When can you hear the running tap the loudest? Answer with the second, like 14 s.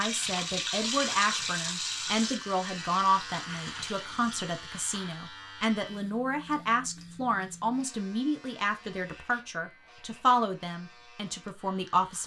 1 s.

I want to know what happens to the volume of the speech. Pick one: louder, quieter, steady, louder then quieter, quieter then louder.
steady.